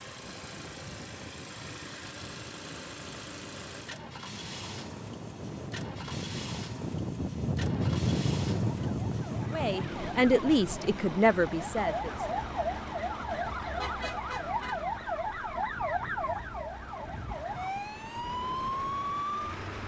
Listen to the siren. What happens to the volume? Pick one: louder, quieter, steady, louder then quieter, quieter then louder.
louder.